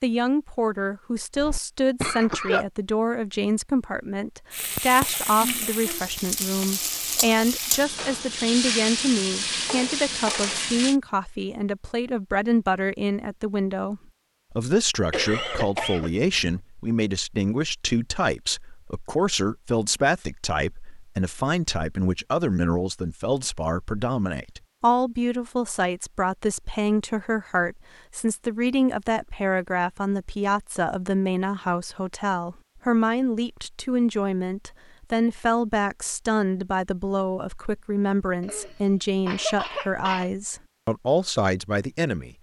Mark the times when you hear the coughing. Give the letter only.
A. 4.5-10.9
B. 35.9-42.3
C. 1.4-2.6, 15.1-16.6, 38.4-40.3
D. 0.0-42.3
C.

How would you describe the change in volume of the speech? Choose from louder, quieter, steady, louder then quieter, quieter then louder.
steady.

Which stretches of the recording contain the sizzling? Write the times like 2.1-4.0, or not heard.
4.5-10.9.